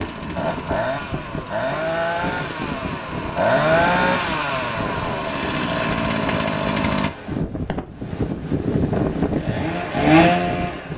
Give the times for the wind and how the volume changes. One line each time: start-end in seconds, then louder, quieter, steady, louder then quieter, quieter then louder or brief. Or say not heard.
0.0-10.9 louder.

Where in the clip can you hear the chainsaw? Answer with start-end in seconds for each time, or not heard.
0.0-7.1, 9.2-10.9.